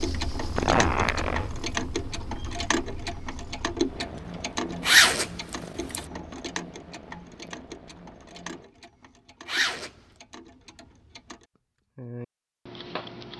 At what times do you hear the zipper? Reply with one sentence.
The zipper can be heard from 0.6 to 1.5 s, from 4.8 to 6.0 s and from 9.4 to 10.2 s.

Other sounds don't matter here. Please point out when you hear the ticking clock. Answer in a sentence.
You can hear the ticking clock from 0.0 to 13.3 s.